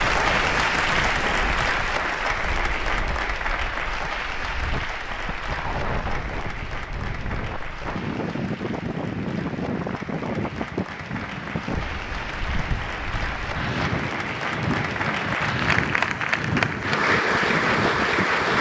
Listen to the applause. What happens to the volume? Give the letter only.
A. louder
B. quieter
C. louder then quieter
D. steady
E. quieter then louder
E.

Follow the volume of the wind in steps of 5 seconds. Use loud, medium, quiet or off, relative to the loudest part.
medium, loud, loud, loud.